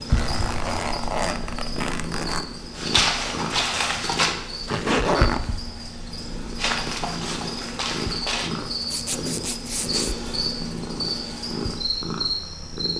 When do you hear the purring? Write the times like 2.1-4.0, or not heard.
0.0-12.9.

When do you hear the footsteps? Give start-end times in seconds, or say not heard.
2.8-4.3, 6.5-8.5.